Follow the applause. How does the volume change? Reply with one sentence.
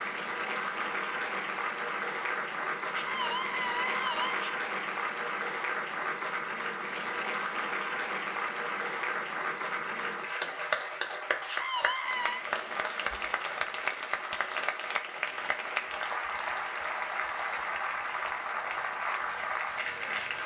The loudness of the applause stays about the same.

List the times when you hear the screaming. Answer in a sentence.
The screaming can be heard from 2.9 to 4.5 s and from 11.4 to 12.4 s.